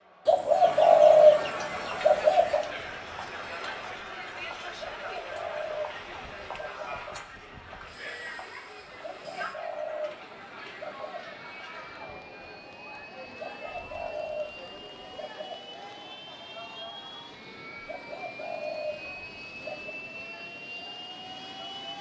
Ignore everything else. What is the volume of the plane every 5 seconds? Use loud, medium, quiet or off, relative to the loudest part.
quiet, quiet, medium, loud, loud.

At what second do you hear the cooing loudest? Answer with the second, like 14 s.
1 s.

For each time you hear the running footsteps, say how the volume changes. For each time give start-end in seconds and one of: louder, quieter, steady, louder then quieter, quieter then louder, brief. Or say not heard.
not heard.